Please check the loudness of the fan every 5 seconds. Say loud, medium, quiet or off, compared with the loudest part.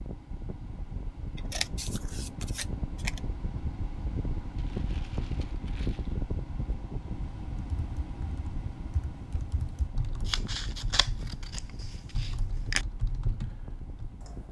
loud, loud, medium.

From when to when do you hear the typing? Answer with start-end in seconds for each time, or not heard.
7.8-14.4.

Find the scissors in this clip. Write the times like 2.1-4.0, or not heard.
1.4-3.3, 10.2-12.8.